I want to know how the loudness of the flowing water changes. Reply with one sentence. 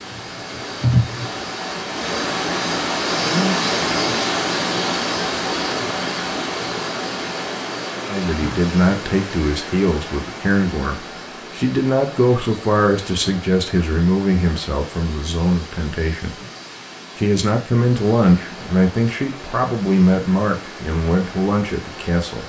The loudness of the flowing water goes down.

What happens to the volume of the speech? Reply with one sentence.
The loudness of the speech stays about the same.